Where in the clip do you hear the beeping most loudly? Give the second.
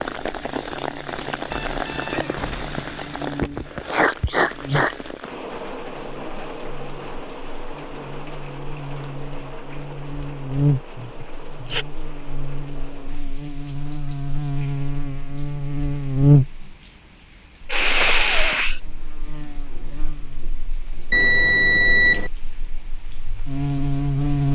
22 s.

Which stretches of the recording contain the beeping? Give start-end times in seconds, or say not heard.
1.5-3.1, 21.1-22.3.